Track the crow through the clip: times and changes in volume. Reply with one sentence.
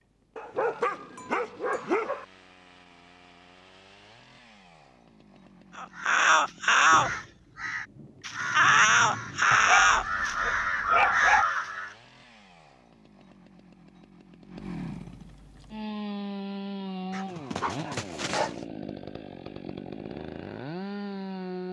You can hear the crow from 5.8 to 11.9 s, getting quieter then louder.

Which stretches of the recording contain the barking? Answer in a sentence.
The barking can be heard from 0.3 to 2.2 s, from 9.5 to 11.4 s and from 17.1 to 18.6 s.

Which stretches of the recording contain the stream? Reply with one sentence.
You can't hear the stream here.